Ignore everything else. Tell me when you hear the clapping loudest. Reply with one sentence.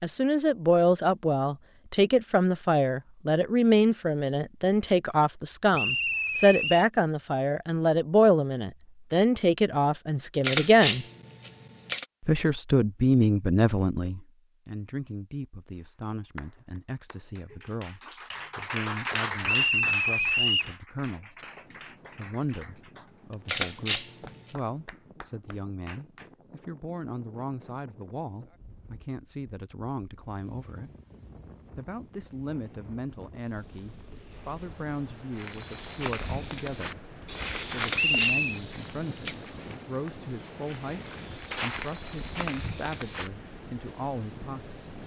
The loudest moment of the clapping is at 19 seconds.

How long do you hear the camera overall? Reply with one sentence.
The camera can be heard for 4 seconds in total.